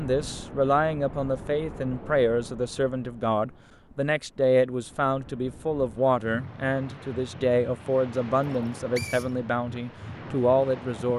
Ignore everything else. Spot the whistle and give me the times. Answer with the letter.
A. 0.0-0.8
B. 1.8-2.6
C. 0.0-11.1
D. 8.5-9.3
D.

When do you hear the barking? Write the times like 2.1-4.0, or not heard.
not heard.